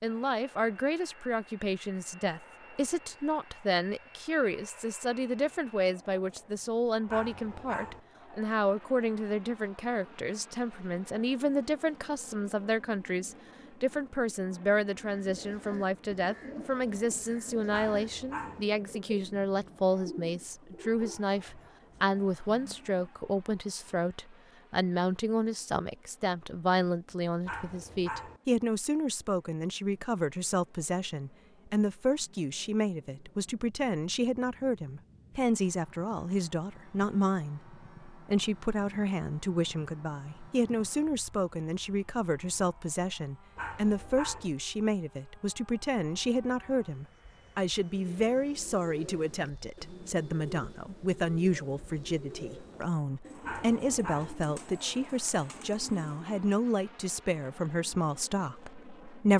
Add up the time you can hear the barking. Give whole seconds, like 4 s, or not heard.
5 s.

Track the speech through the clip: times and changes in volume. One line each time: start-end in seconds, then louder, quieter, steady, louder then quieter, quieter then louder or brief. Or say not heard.
0.0-59.3 steady.